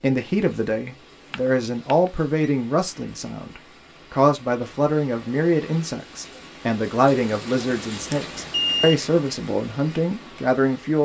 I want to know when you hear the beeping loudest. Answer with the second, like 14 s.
9 s.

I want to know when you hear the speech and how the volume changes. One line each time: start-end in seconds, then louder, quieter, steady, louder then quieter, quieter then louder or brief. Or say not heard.
0.0-11.0 steady.